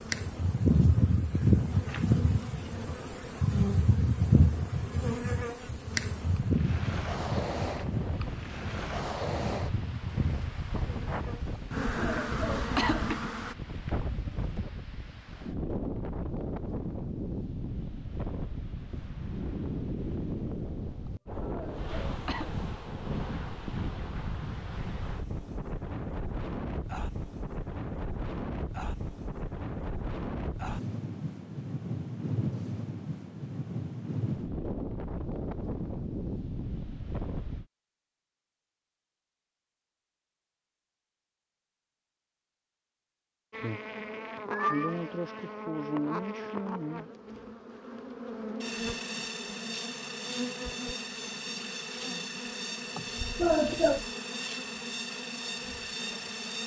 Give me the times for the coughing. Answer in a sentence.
You can hear the coughing from 11.6 to 13.2 s, from 21.1 to 22.6 s and from 53.0 to 54.0 s.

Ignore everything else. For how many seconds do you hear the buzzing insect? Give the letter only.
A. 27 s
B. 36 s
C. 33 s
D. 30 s
A.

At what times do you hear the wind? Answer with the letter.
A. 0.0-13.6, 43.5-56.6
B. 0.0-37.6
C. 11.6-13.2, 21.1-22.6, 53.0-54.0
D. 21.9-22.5
B.